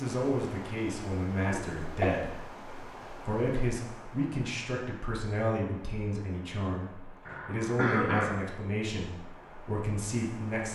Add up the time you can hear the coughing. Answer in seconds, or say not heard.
2 s.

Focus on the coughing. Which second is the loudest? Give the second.
8 s.